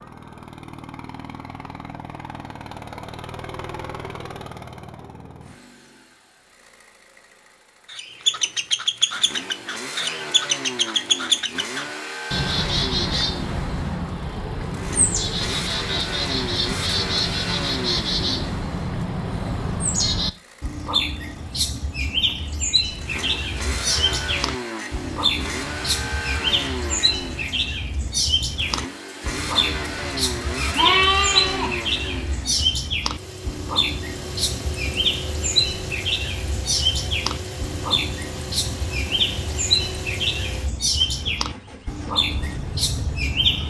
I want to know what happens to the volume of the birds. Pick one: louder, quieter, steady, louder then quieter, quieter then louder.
steady.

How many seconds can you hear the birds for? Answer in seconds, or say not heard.
36 s.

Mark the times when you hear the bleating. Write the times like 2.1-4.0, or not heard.
30.4-31.7.